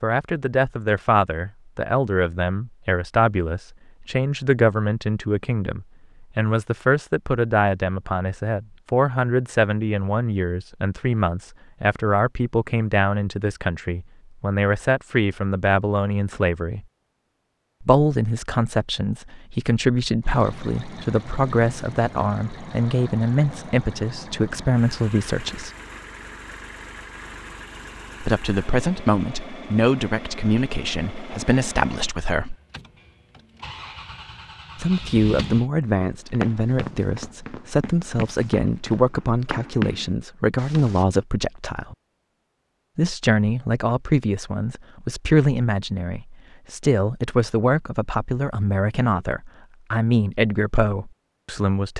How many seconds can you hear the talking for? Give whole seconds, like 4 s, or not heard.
45 s.